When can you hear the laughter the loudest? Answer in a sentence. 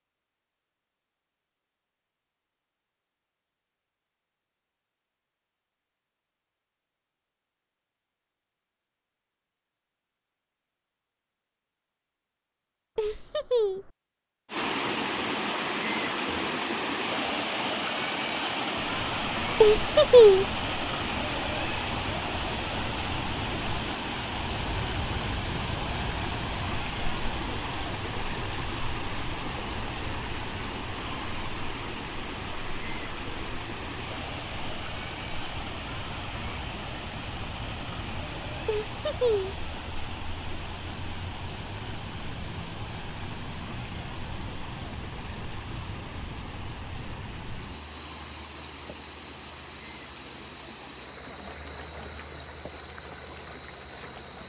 The loudest moment of the laughter is at 20 seconds.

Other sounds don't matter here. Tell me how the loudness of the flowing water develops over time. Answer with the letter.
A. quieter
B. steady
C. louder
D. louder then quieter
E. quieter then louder
A.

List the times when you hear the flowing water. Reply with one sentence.
You can hear the flowing water from 14.5 to 54.4 s.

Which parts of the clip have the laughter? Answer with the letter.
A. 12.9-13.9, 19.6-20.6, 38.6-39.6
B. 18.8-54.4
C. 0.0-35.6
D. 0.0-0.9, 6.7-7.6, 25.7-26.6
A.